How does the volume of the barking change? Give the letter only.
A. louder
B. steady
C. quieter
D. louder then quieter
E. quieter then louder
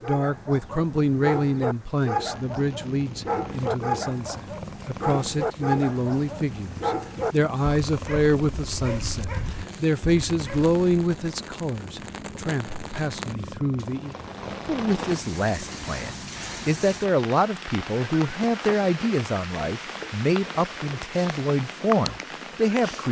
C.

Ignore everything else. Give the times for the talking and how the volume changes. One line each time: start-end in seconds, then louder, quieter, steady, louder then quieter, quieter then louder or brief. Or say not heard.
0.1-23.0 steady.